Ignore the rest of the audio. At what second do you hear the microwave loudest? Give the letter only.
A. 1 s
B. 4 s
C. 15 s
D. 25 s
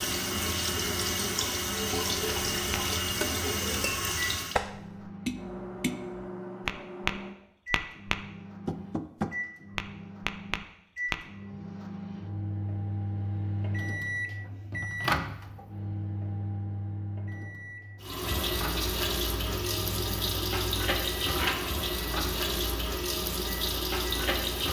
C.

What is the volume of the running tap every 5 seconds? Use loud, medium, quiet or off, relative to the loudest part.
loud, off, off, loud, loud.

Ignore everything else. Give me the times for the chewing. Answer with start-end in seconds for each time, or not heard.
not heard.